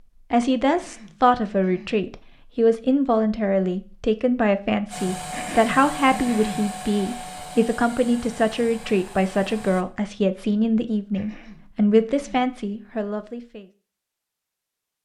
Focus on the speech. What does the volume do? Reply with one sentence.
The loudness of the speech stays about the same.